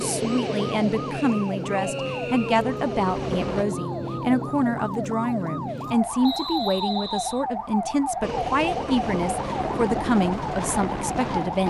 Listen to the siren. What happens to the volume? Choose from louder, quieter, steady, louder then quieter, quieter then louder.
steady.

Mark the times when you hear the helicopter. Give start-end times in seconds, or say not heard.
0.0-3.6, 8.2-11.6.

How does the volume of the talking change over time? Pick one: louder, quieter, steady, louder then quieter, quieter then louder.
steady.